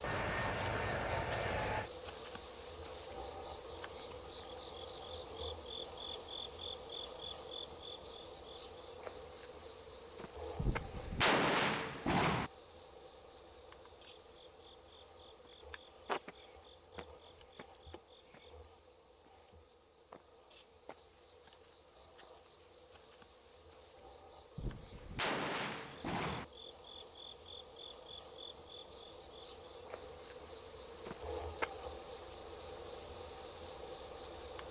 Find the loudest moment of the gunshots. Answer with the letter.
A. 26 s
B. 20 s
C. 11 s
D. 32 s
C.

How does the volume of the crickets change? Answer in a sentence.
The volume of the crickets goes down, then up.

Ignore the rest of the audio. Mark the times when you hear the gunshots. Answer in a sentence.
The gunshots can be heard from 10.6 to 12.5 s and from 24.6 to 26.4 s.